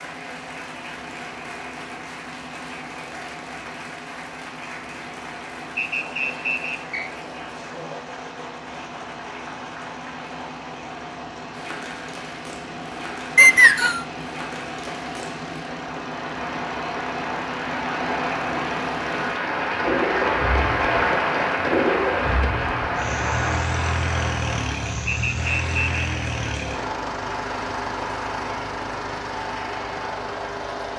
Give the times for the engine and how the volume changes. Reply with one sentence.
You can hear the engine from 0.0 to 30.9 s, getting louder.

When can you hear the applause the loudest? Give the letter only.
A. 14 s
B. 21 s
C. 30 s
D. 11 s
B.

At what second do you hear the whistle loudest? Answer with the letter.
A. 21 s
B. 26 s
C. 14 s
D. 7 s
C.